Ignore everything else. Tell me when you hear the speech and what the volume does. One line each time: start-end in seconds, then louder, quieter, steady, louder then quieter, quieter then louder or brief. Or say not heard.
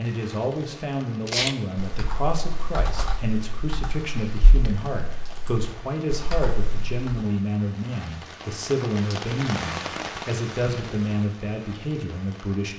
0.0-12.7 steady.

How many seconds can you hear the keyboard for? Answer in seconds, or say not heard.
6 s.